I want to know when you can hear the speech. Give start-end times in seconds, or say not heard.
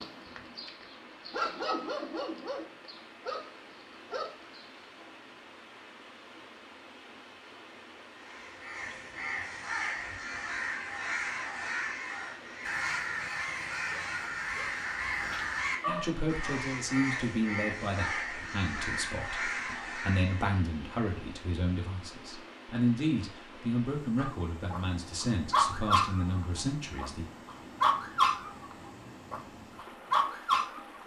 15.8-27.2.